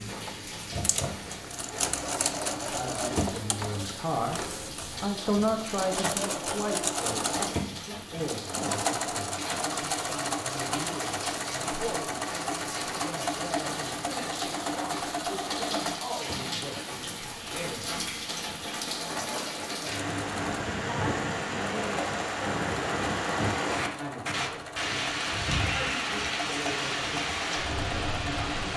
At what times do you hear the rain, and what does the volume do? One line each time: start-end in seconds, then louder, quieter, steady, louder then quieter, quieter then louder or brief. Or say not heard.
0.0-28.7 louder.